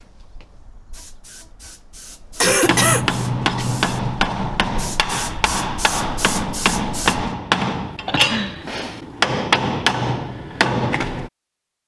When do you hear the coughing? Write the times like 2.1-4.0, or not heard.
2.4-3.0, 8.1-8.7.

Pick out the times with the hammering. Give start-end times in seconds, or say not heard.
2.6-11.3.